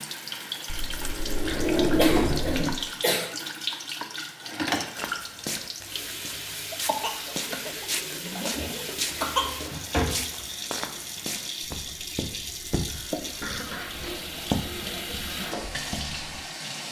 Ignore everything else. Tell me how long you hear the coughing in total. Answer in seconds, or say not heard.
6 s.